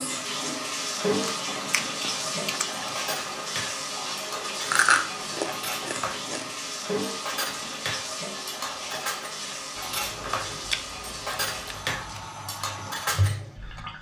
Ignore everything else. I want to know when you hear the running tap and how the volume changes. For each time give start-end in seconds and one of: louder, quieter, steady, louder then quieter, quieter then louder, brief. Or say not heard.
0.0-13.9 quieter.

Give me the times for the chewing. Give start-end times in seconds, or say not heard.
1.2-3.0, 4.7-6.5, 9.8-12.2.